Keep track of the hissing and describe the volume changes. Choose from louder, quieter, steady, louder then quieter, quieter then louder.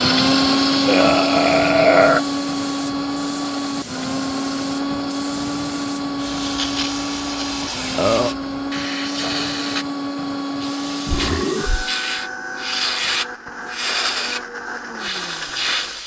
louder.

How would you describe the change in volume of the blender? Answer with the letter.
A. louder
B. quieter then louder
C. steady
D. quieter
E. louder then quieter
D.